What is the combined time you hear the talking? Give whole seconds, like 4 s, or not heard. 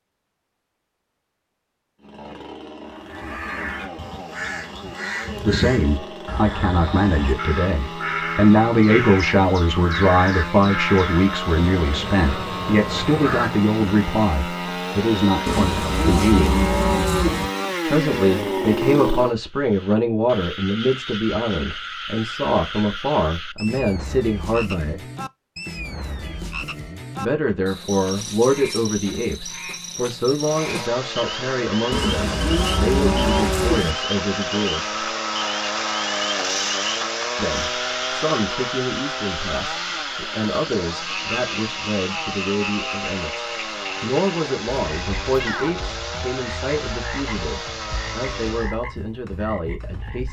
39 s.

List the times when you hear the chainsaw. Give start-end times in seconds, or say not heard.
1.9-19.4, 30.4-48.8.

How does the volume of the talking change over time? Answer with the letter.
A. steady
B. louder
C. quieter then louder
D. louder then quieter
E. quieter
E.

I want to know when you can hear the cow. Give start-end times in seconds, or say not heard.
15.4-17.4, 31.9-34.0.